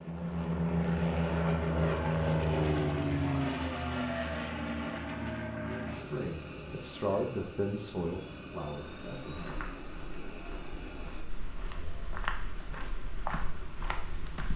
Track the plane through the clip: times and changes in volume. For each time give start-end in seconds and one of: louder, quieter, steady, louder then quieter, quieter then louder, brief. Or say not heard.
0.0-11.2 quieter.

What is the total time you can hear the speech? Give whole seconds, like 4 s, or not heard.
4 s.